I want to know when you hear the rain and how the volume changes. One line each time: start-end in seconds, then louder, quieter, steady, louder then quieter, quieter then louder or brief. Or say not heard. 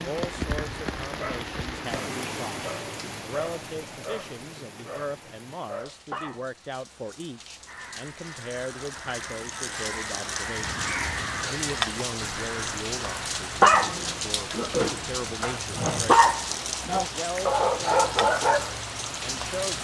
0.0-19.7 quieter then louder.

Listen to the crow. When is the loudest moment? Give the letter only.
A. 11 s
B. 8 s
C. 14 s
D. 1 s
A.